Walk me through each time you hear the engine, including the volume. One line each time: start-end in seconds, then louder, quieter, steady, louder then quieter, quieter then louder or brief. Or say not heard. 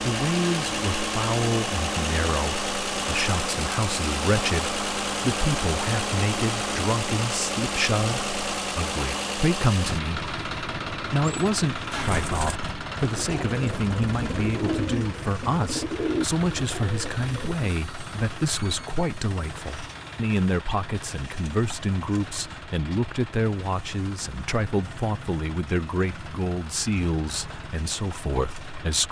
0.0-29.0 quieter.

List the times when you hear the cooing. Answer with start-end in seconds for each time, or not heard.
11.9-17.6.